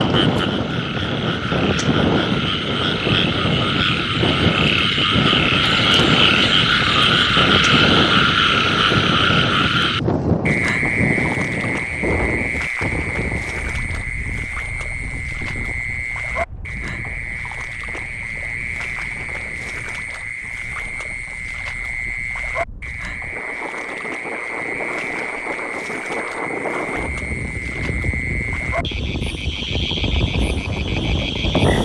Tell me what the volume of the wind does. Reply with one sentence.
The loudness of the wind goes down, then up.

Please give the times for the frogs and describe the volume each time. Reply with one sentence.
The frogs can be heard from 0.0 to 31.8 s, getting quieter.